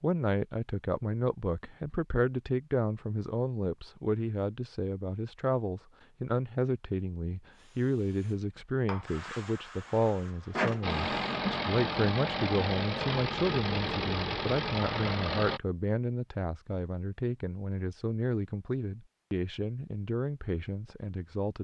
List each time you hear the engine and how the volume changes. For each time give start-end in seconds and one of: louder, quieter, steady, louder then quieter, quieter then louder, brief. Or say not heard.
10.8-15.6 steady.